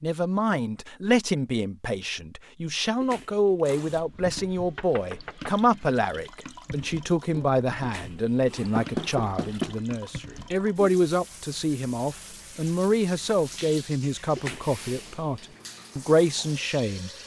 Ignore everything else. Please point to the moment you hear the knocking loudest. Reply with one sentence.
The volume of the knocking peaks at 9 seconds.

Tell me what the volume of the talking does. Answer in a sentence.
The volume of the talking stays about the same.